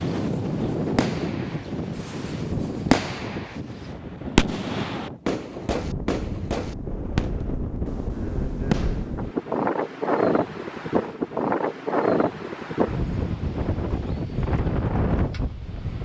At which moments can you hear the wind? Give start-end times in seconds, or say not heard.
0.0-16.0.